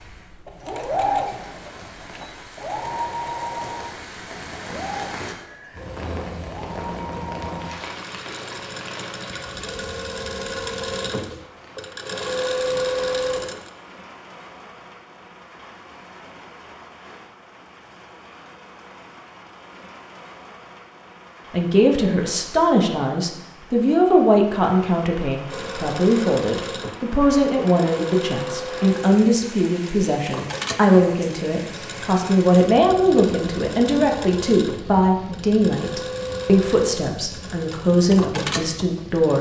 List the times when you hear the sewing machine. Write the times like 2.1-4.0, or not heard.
0.0-13.7, 25.5-39.3.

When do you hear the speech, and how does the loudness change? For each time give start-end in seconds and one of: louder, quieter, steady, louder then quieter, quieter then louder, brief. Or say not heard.
21.5-39.3 steady.